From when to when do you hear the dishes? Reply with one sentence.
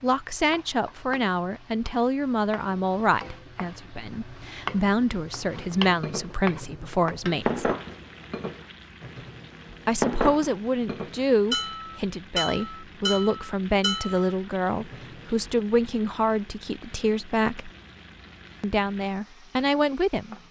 The dishes can be heard from 5.5 to 15.6 s.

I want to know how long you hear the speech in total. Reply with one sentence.
You can hear the speech for 17 seconds altogether.